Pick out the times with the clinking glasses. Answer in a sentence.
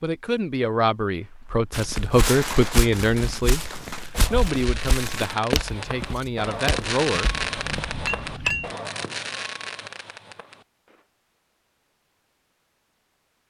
You can hear the clinking glasses from 7.2 to 8.8 s.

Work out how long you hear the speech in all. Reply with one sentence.
You can hear the speech for 7 seconds altogether.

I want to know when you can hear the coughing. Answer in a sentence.
The coughing can't be heard in this clip.